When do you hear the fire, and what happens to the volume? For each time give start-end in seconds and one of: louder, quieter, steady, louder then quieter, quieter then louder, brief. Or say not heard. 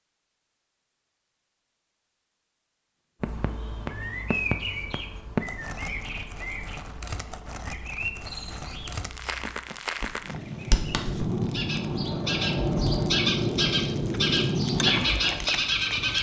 3.2-16.1 quieter then louder.